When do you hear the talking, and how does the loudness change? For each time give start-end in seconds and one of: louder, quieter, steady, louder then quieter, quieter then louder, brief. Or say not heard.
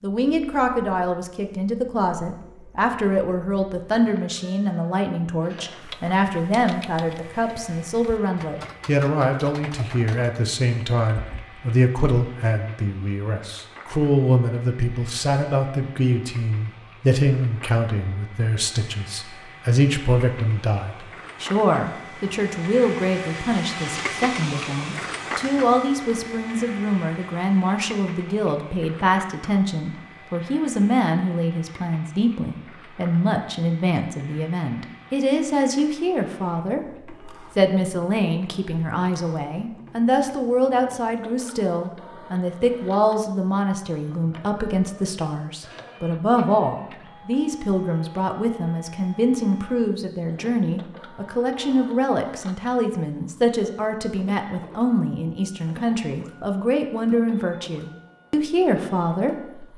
0.0-59.7 steady.